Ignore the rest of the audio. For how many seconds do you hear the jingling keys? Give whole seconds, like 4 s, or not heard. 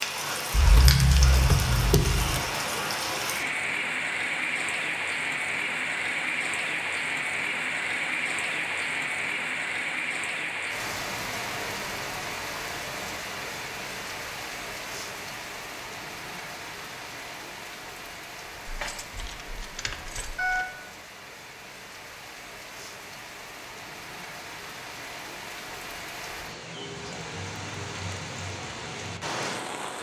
4 s.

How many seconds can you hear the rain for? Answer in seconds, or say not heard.
30 s.